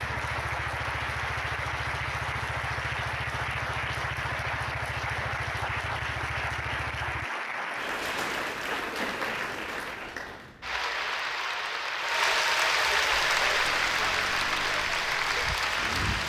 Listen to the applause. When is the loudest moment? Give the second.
13 s.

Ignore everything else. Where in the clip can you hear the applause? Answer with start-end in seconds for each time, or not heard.
0.0-16.2.